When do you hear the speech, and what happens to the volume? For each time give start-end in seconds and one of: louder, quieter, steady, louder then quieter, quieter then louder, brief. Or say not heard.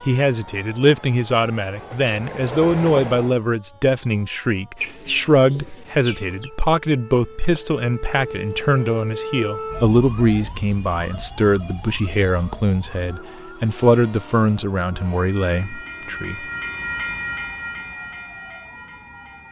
0.1-16.4 steady.